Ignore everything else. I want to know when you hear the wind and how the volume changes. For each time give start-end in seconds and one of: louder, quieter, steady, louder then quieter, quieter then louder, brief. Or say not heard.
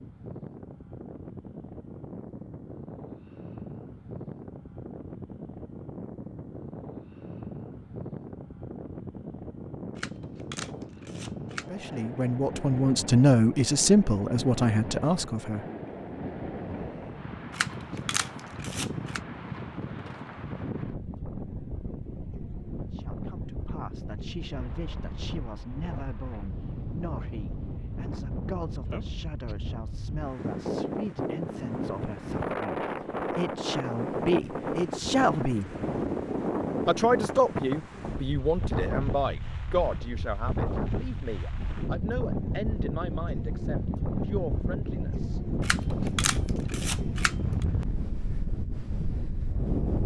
0.0-50.0 louder.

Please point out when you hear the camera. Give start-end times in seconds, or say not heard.
9.9-11.7, 17.5-19.2, 45.6-47.6.